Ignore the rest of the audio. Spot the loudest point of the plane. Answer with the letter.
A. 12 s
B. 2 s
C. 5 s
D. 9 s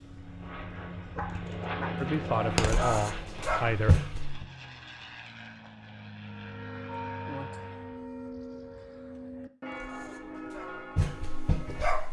B.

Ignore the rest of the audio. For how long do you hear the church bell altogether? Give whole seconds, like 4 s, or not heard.
6 s.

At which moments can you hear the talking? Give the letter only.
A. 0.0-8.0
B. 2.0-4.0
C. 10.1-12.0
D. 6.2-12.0
B.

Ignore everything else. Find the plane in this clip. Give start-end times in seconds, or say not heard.
0.0-8.0.